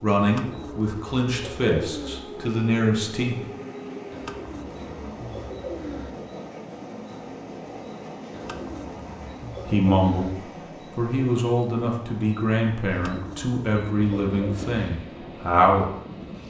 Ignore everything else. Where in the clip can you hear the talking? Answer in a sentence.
You can hear the talking from 0.0 to 3.5 s and from 9.7 to 15.8 s.